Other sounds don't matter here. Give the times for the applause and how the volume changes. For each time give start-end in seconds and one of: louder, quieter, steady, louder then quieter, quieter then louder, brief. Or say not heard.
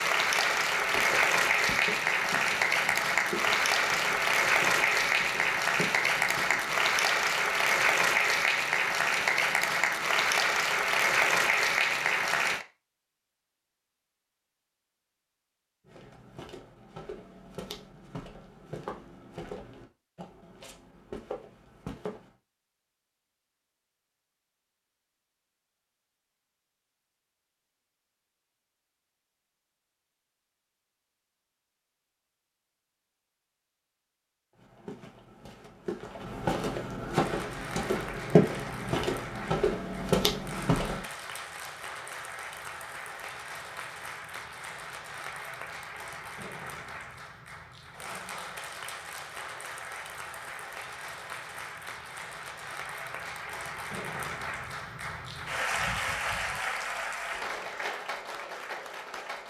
0.0-12.7 steady
37.1-59.4 louder.